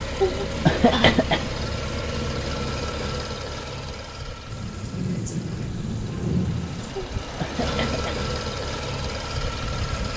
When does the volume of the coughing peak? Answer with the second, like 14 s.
1 s.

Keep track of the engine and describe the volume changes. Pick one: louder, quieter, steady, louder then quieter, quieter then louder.
quieter then louder.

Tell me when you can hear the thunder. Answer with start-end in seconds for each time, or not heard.
4.5-7.0.